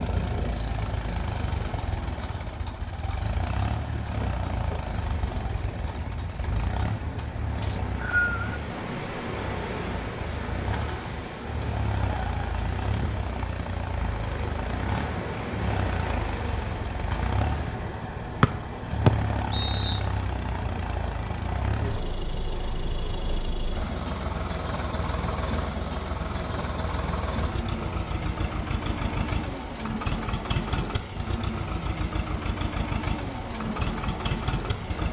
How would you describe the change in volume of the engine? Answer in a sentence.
The volume of the engine stays about the same.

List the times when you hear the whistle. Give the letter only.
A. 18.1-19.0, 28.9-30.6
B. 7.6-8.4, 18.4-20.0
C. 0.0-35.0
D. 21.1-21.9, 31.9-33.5
B.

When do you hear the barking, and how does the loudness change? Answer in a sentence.
The barking can't be heard in this clip.